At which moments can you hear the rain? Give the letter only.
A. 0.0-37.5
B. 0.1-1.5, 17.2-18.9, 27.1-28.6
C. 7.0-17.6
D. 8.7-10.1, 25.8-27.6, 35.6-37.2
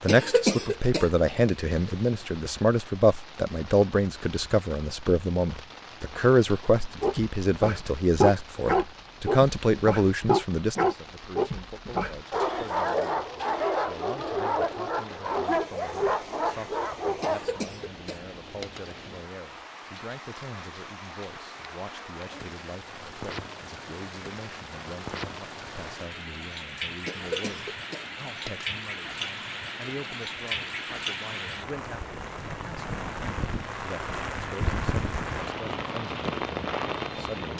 A.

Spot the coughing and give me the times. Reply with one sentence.
The coughing can be heard from 0.1 to 1.5 s, from 17.2 to 18.9 s and from 27.1 to 28.6 s.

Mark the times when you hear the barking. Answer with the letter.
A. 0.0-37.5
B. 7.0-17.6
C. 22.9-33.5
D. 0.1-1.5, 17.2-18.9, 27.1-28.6
B.